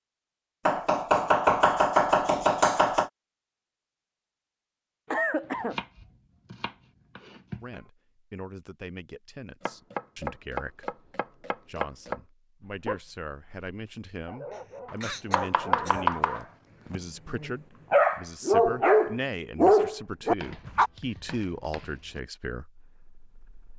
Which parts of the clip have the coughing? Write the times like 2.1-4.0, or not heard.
5.1-5.8, 14.5-16.1.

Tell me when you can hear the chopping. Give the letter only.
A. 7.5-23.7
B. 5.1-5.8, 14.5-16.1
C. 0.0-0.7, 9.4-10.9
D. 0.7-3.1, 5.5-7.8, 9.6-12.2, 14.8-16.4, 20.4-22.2
D.